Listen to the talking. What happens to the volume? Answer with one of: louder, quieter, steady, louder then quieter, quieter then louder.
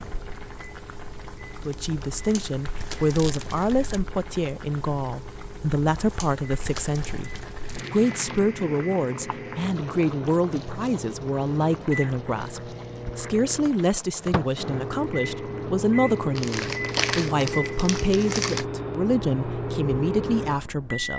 steady.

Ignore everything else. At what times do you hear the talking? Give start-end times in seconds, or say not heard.
1.6-21.1.